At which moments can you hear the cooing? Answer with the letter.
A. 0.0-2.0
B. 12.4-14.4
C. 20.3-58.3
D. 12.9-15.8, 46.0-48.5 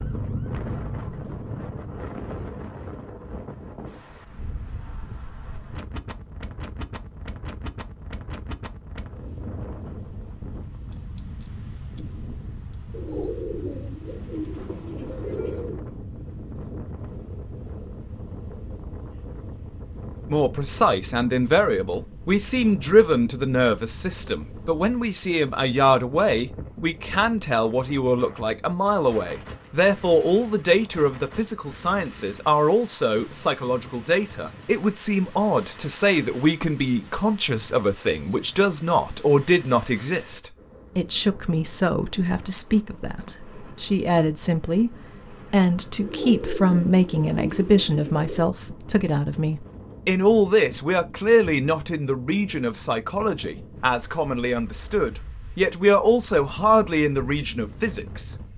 D.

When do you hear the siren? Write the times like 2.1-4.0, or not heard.
0.0-2.0.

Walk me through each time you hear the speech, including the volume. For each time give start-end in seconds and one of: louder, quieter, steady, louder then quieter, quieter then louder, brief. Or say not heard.
20.3-58.3 steady.